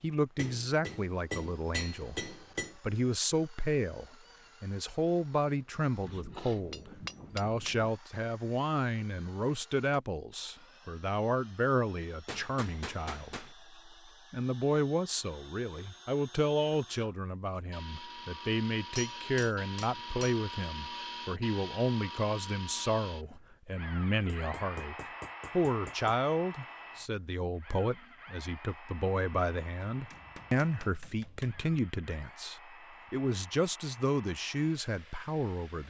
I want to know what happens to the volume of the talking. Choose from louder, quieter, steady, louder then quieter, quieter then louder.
steady.